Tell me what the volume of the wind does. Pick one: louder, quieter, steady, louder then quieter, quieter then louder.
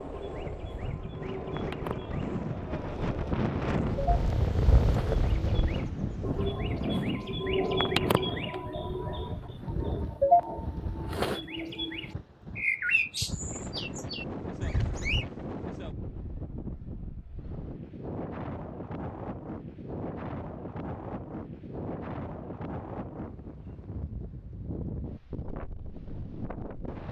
quieter.